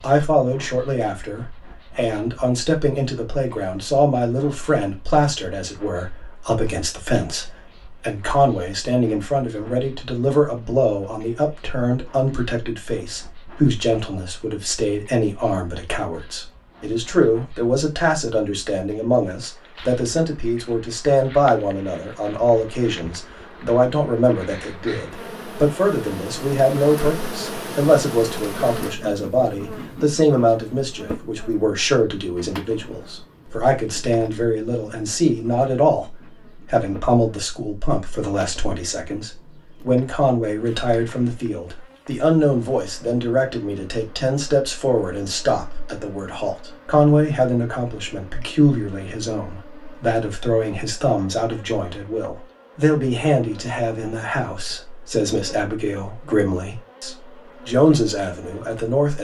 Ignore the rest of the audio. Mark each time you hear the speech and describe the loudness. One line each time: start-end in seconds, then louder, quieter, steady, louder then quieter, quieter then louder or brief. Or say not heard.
0.0-59.1 steady.